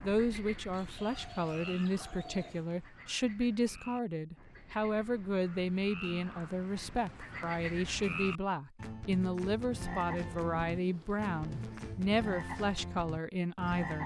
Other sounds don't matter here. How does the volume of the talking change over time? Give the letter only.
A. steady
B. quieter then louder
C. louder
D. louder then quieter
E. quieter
A.